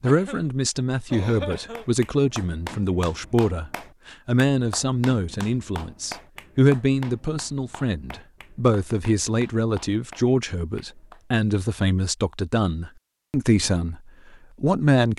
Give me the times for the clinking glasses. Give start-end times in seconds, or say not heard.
not heard.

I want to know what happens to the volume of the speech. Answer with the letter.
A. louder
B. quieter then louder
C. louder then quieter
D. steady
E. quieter
D.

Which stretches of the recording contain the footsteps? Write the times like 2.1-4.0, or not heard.
not heard.